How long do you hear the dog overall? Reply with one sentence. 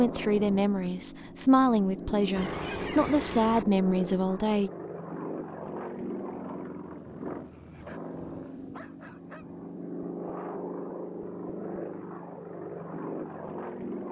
You can hear the dog for 2 seconds altogether.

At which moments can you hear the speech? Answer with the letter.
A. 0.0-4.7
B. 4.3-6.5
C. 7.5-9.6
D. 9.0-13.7
A.